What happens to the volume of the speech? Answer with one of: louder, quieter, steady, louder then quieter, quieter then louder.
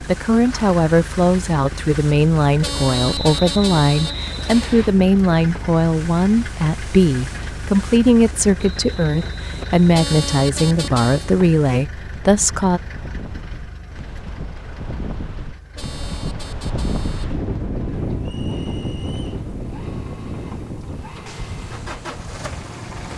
steady.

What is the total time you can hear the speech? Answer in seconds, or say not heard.
13 s.